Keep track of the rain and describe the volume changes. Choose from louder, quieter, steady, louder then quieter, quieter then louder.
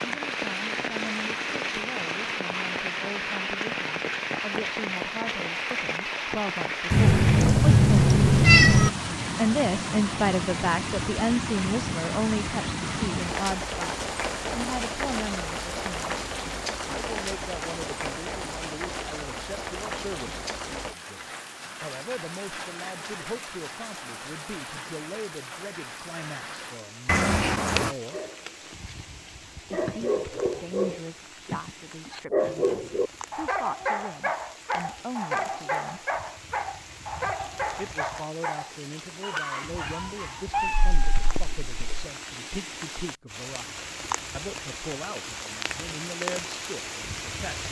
quieter then louder.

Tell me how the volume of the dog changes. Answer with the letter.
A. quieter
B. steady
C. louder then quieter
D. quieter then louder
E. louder
A.